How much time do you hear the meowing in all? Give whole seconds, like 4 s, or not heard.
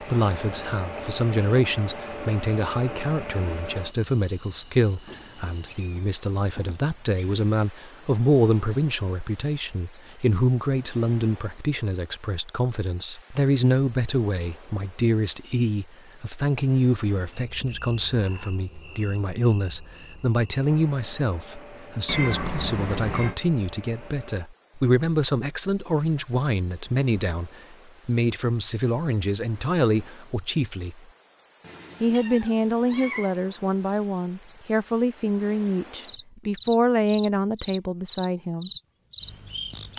5 s.